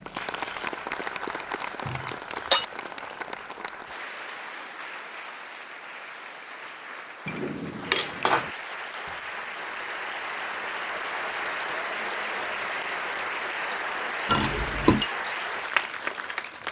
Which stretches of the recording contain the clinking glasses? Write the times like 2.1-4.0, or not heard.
1.9-2.6, 7.2-8.5, 14.2-15.1.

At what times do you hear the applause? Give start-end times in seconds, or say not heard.
0.0-16.6.